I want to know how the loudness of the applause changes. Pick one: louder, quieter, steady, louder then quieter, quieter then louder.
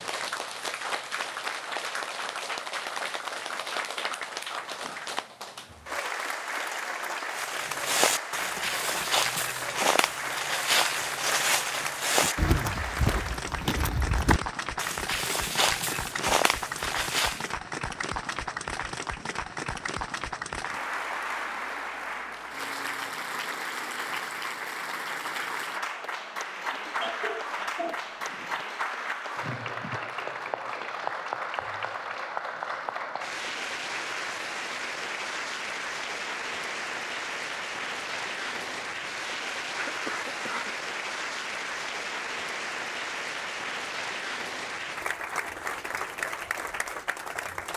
steady.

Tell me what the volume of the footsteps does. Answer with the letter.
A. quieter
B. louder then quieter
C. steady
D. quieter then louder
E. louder
C.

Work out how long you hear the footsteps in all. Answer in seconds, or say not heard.
10 s.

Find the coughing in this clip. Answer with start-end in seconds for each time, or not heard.
12.2-12.8, 26.7-28.6, 39.8-40.7.